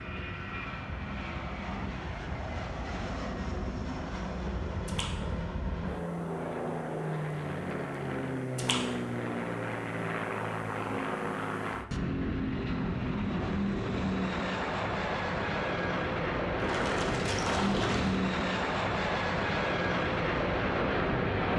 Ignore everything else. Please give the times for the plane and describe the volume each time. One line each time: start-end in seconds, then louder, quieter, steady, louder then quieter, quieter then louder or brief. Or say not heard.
0.0-21.5 louder.